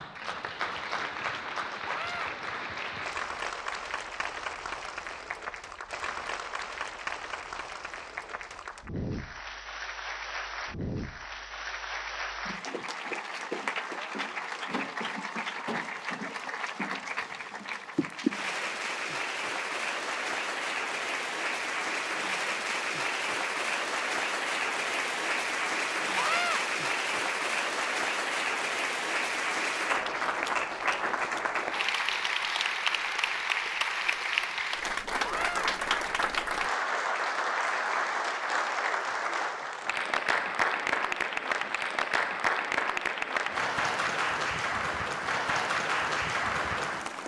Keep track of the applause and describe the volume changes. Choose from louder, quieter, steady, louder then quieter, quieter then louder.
louder.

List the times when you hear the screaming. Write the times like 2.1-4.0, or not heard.
1.9-2.4, 26.1-26.6, 35.2-35.7.